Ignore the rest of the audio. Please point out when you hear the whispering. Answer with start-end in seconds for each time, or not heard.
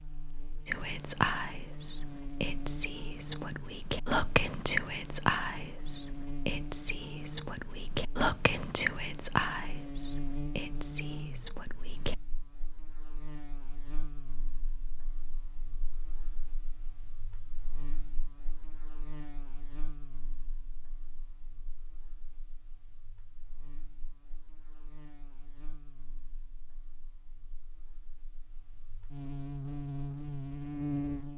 0.7-12.2.